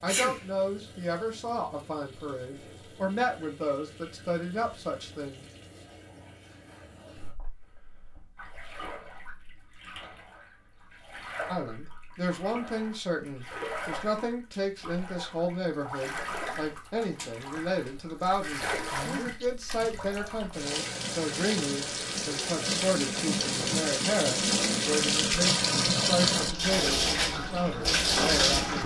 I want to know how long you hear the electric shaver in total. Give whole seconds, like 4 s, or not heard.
not heard.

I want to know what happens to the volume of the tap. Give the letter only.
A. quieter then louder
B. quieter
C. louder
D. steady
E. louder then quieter
C.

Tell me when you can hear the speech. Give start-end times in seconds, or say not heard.
0.0-5.5, 11.4-28.8.